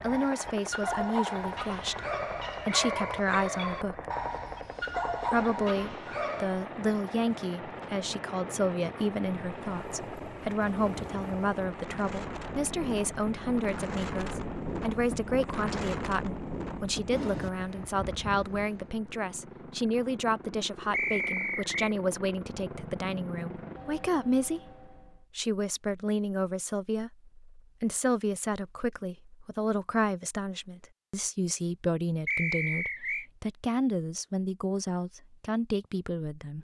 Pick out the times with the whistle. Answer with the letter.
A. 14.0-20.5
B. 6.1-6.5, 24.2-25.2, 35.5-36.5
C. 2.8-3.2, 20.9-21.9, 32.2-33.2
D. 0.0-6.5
C.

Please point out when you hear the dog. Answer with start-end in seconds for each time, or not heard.
0.0-6.5.